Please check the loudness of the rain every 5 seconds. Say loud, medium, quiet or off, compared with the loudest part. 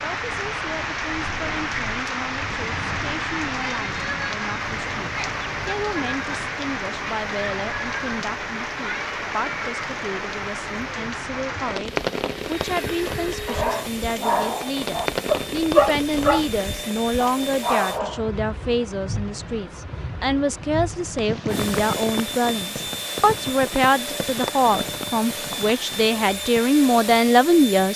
loud, loud, loud, medium, medium, medium.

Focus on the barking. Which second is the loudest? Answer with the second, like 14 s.
16 s.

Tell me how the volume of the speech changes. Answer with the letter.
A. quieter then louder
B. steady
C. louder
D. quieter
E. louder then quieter
C.